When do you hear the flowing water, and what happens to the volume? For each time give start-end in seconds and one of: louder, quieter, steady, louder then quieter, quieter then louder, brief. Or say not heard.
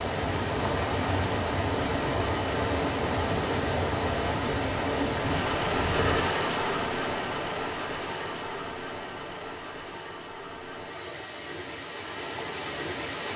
0.0-13.3 quieter.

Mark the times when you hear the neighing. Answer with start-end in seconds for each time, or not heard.
5.2-6.3.